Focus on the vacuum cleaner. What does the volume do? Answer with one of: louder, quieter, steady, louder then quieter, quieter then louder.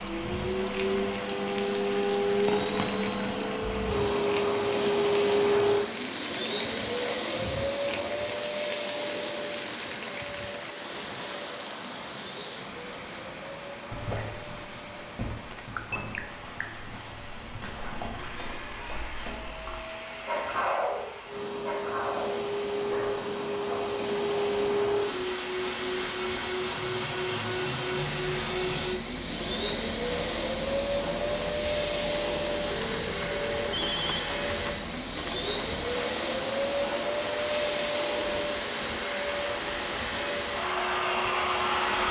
quieter then louder.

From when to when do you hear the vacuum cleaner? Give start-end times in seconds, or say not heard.
0.0-42.0.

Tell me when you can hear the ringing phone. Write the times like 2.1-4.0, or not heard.
2.5-3.0, 15.5-16.6, 32.6-34.2.